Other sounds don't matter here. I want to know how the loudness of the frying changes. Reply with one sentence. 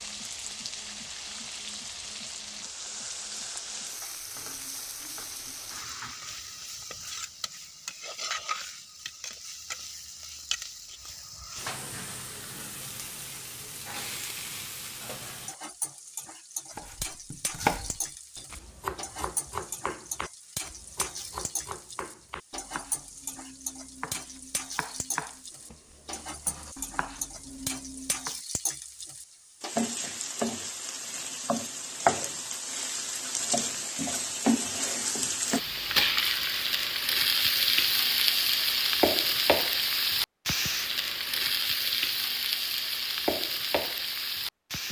The volume of the frying goes up.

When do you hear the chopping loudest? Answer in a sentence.
The loudest moment of the chopping is at 18 seconds.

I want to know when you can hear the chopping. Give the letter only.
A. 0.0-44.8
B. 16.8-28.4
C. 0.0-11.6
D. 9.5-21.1
B.